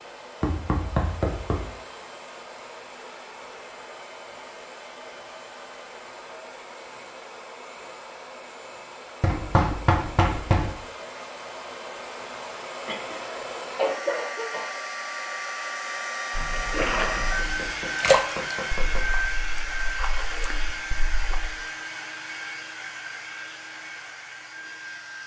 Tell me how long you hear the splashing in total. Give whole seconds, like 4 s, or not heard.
5 s.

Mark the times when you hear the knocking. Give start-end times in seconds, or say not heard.
0.4-1.7, 9.2-10.7, 16.9-19.1.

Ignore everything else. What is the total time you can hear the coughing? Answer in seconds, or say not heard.
2 s.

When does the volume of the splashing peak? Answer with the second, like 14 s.
18 s.